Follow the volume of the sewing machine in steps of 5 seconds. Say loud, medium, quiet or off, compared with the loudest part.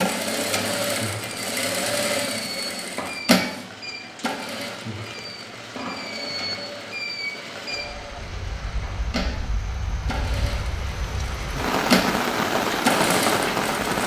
loud, medium, loud.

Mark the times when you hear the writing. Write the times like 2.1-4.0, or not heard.
not heard.